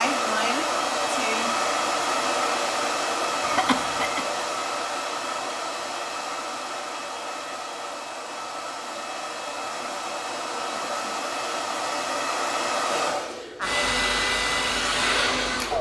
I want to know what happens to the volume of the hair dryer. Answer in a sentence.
The loudness of the hair dryer goes down, then up.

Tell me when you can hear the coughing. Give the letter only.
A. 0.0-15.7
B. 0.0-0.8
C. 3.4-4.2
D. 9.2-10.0
C.